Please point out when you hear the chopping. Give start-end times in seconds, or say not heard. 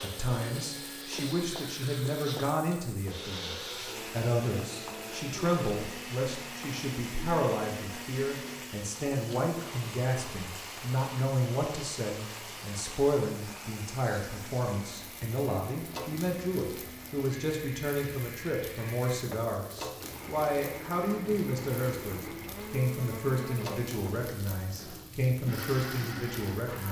not heard.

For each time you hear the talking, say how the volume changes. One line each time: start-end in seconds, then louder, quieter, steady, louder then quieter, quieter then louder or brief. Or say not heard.
0.0-26.8 steady.